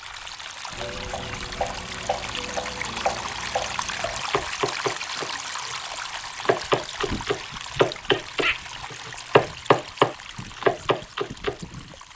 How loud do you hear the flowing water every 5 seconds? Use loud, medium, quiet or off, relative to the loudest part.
loud, loud, medium.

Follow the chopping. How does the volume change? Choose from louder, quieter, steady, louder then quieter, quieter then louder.
louder.